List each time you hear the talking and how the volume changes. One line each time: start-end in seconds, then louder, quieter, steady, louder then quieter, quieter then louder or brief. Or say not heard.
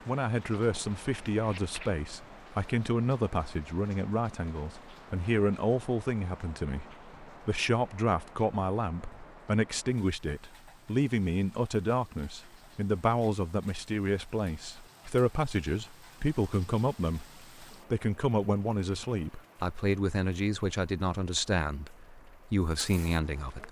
0.1-23.6 steady.